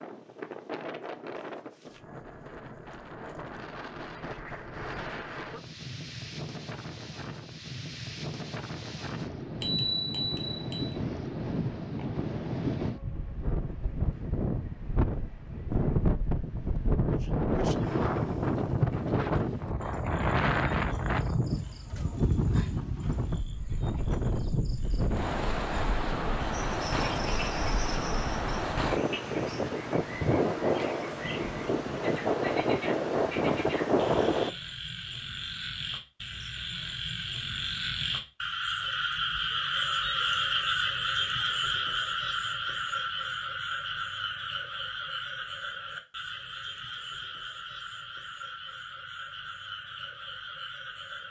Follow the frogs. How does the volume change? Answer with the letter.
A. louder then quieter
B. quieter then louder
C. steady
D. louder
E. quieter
A.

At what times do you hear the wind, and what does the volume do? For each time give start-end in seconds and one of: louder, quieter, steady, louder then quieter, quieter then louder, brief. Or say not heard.
0.0-34.5 louder.